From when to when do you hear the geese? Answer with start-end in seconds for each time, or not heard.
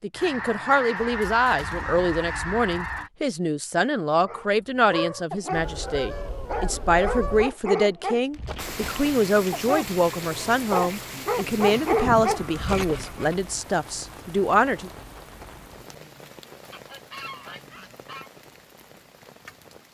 0.1-3.1, 5.5-7.5, 11.6-13.3, 16.7-18.3.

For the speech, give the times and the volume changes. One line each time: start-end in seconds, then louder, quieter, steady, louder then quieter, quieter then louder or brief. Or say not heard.
0.0-14.9 steady.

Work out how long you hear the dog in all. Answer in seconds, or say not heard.
9 s.